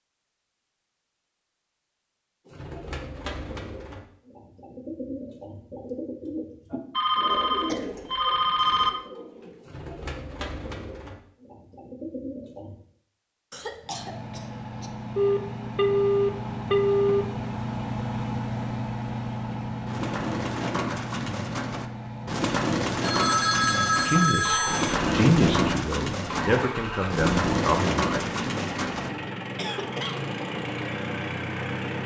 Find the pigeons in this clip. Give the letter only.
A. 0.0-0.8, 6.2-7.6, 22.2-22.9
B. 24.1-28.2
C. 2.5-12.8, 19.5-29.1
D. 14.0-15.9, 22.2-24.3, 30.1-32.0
C.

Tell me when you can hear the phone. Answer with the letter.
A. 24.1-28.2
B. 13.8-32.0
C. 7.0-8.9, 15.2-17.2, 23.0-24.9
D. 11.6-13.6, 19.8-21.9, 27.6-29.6
C.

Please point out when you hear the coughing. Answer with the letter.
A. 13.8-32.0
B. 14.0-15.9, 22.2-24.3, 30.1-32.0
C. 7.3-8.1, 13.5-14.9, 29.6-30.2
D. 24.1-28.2
C.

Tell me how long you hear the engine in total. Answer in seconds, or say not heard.
18 s.